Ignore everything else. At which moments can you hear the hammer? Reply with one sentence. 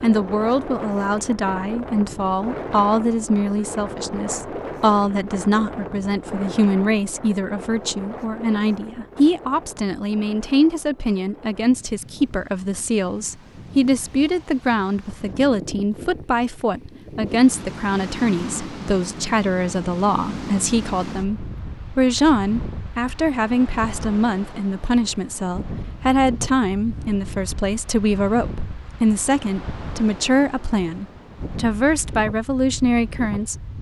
The hammer can't be heard in this clip.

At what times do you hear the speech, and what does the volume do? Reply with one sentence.
You can hear the speech from 0.0 to 33.5 s, at a steady volume.